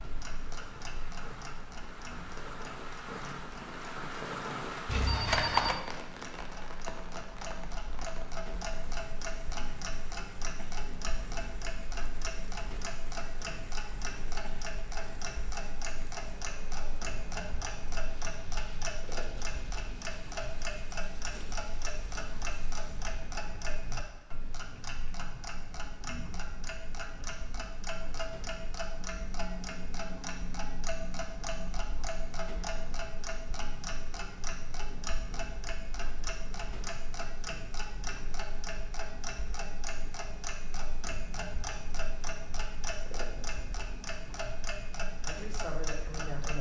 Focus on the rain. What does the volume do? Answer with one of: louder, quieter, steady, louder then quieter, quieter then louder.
quieter.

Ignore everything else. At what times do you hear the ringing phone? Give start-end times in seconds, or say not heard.
4.8-5.8.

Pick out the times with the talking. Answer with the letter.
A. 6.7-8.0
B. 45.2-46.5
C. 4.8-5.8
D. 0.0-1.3
B.